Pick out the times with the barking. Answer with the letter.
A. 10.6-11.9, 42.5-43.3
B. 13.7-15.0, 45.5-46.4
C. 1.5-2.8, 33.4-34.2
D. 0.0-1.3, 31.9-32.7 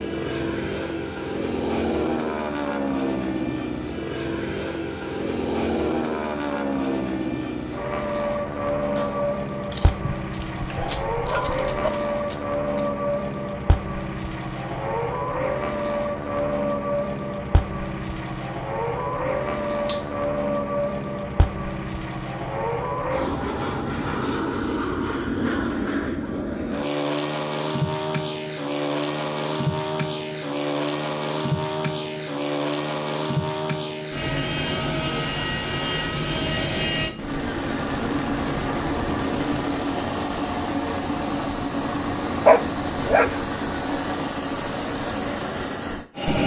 A.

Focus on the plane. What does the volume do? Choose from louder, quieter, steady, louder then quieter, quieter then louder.
steady.